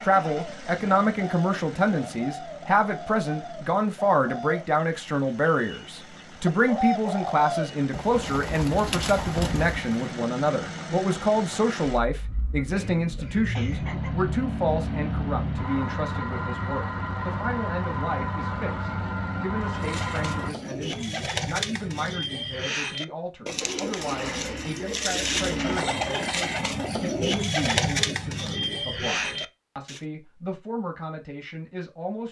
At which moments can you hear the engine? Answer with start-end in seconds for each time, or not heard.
0.0-20.6, 23.6-25.9.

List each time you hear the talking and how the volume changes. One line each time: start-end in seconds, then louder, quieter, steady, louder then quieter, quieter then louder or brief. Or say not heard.
0.0-32.2 quieter.